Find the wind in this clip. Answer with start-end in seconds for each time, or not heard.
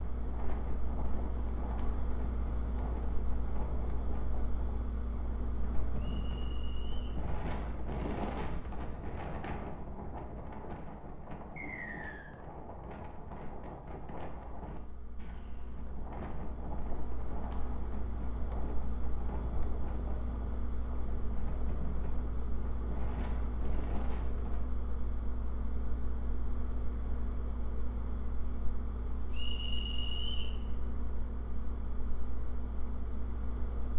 0.0-24.6.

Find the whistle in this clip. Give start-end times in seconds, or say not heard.
6.0-7.2, 11.6-12.3, 29.3-30.6.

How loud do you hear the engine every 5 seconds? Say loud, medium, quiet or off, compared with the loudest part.
loud, loud, quiet, loud, loud, loud, loud.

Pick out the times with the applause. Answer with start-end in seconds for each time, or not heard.
not heard.